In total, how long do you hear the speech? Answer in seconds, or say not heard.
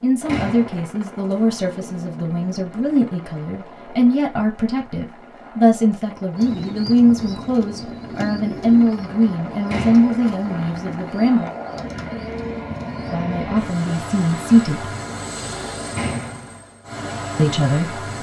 14 s.